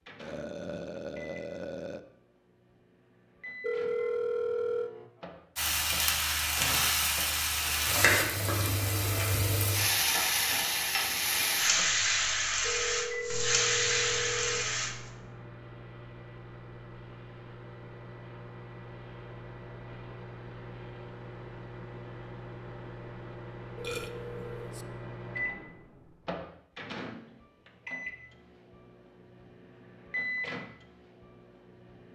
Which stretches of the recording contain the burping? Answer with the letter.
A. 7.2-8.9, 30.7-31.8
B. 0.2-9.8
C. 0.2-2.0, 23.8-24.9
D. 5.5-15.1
C.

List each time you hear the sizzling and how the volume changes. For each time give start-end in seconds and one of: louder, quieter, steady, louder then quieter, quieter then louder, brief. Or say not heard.
5.5-15.1 steady.